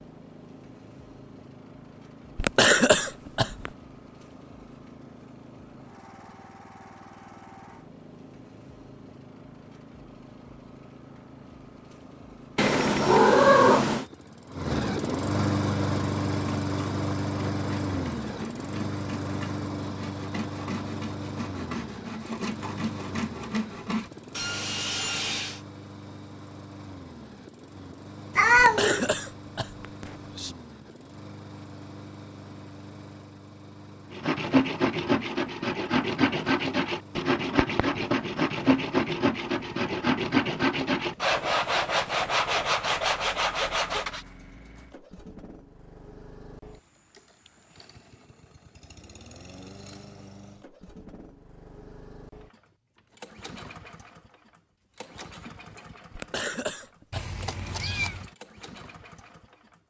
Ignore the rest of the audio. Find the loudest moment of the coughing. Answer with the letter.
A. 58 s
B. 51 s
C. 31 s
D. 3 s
D.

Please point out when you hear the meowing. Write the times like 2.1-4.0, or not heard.
12.6-14.1, 28.4-29.1, 57.1-58.2.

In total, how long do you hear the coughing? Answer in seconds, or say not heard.
5 s.